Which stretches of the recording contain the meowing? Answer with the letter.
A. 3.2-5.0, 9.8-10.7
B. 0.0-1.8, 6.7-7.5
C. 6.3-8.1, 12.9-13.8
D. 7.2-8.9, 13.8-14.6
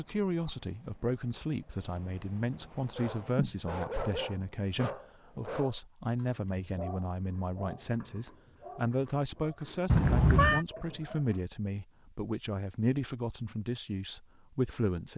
A.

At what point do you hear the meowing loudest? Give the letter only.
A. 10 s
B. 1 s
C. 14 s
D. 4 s
A.